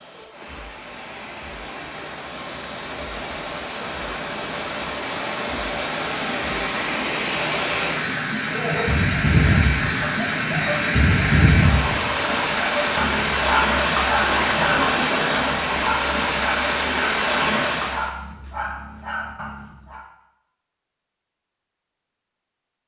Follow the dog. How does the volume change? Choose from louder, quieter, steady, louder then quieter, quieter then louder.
quieter.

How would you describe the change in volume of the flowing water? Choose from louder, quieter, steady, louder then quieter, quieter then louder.
louder.